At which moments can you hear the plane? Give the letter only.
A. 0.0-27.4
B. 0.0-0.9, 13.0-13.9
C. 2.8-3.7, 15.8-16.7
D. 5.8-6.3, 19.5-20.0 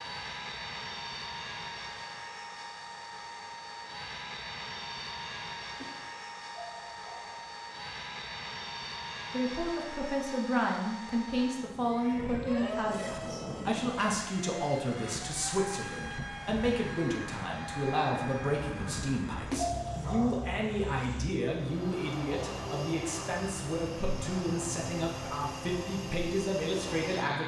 A.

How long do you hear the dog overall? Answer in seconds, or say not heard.
2 s.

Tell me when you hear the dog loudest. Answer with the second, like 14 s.
20 s.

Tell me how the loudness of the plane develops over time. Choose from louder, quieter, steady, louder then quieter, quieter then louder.
steady.